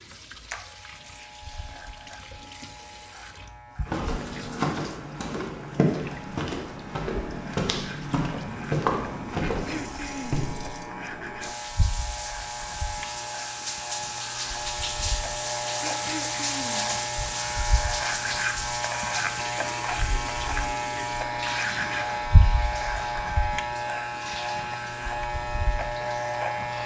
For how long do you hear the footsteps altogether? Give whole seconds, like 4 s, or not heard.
7 s.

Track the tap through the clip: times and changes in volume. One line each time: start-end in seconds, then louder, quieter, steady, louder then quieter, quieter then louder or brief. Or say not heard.
0.0-26.8 louder then quieter.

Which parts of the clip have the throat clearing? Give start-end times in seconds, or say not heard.
9.4-10.4, 15.8-16.9.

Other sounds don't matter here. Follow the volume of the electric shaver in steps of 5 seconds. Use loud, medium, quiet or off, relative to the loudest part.
quiet, quiet, medium, loud, loud, loud.